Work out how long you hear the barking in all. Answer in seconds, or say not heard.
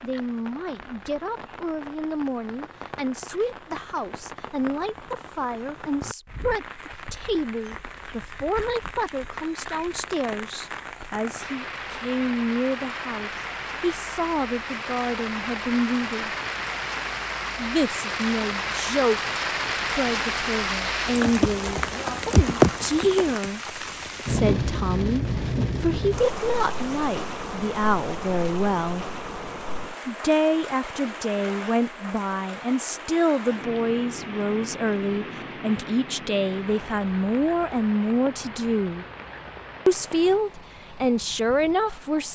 not heard.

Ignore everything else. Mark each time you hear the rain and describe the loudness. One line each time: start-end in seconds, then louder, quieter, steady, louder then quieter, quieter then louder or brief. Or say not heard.
0.0-42.2 louder then quieter.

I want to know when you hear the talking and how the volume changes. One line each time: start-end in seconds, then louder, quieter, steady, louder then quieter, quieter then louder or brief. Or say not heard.
0.0-16.3 steady
17.6-29.1 steady
30.1-39.0 steady
39.9-42.2 brief.